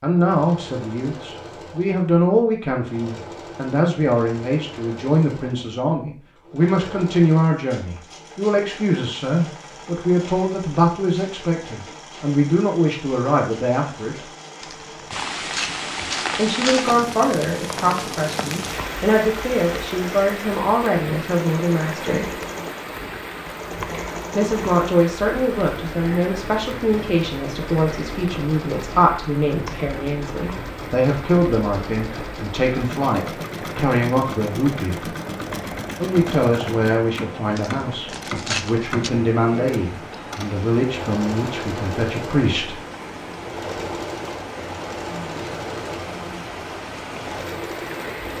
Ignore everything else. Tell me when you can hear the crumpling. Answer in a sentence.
The crumpling can be heard from 14.6 to 17.0 s and from 37.5 to 39.1 s.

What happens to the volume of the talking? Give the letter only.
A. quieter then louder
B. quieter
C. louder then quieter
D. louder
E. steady
E.